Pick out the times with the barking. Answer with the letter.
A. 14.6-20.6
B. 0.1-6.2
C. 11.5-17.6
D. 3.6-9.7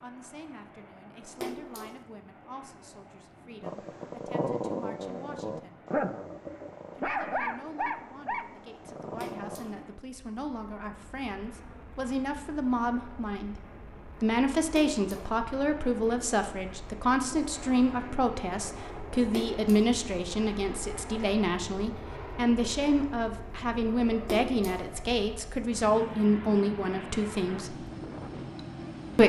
D.